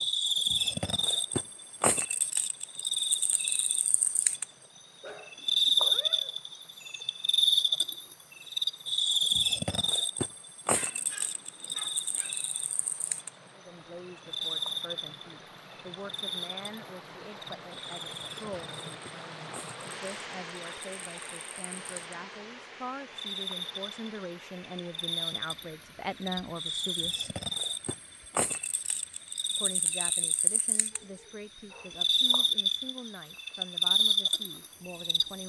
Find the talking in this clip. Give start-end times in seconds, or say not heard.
13.6-27.3, 29.6-35.4.